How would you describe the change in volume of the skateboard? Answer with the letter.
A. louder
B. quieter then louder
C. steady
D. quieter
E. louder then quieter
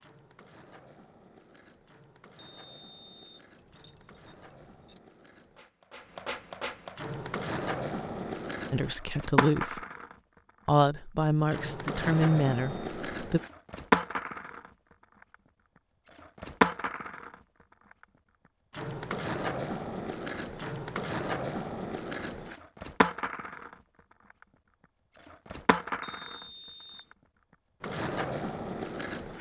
E.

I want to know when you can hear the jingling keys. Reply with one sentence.
You can hear the jingling keys from 3.5 to 5.0 s.